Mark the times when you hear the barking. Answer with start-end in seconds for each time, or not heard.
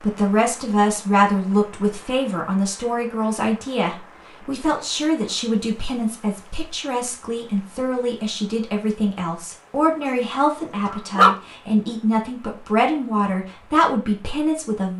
10.1-11.3.